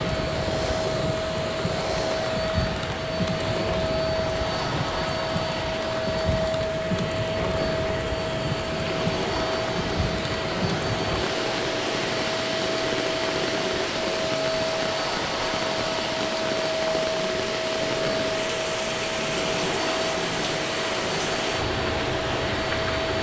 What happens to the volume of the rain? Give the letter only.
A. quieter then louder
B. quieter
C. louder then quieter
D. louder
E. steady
E.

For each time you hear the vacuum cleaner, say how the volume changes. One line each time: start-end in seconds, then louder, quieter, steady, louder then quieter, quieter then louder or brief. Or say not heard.
0.0-23.1 steady.